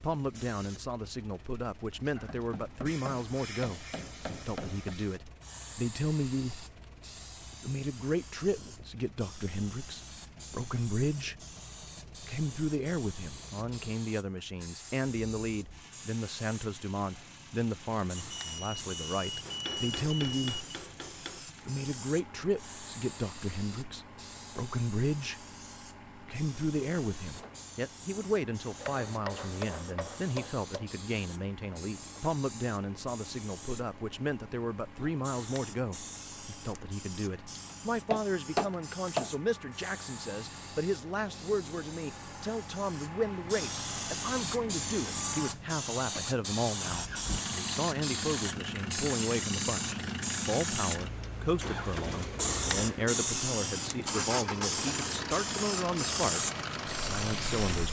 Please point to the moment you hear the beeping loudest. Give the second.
20 s.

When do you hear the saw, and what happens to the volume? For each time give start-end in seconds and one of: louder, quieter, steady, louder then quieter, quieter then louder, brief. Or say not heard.
not heard.